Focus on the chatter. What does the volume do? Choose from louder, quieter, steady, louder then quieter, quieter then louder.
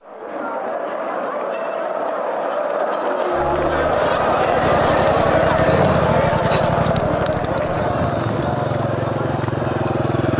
louder then quieter.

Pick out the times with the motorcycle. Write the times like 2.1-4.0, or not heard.
3.3-10.3.